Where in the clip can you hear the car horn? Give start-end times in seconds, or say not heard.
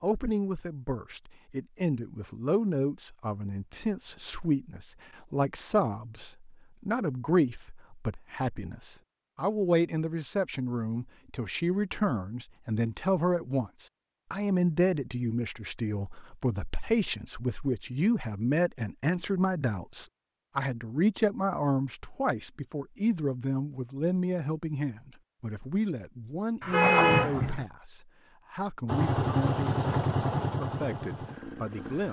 26.6-27.6.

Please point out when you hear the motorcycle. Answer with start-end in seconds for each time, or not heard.
28.9-32.0.